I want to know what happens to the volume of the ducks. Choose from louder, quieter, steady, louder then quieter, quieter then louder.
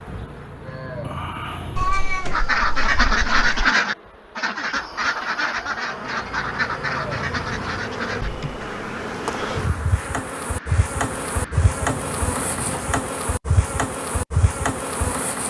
quieter.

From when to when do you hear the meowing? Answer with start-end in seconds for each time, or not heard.
1.8-3.7.